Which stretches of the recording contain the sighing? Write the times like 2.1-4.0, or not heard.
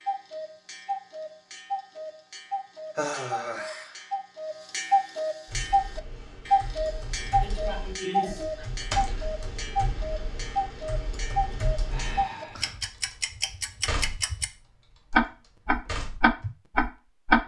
3.0-4.0, 7.4-8.7, 11.9-12.8.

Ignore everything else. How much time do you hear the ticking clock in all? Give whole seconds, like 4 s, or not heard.
17 s.